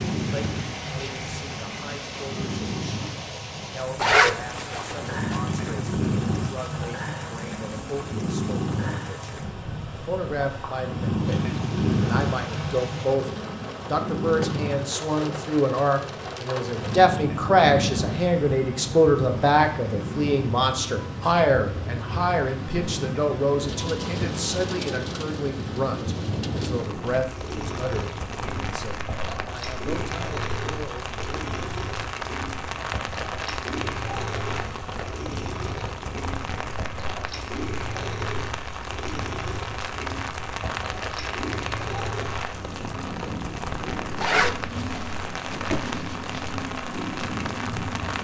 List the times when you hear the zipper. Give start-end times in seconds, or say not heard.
4.0-5.4, 44.1-46.4.